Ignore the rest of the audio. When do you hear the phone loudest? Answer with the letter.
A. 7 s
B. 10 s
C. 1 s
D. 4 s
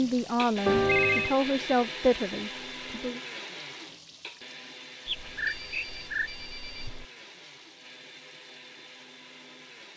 C.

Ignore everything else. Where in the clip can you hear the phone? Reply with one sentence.
You can hear the phone from 0.7 to 1.4 s and from 5.0 to 7.0 s.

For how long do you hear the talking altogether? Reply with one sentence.
You can hear the talking for 3 seconds altogether.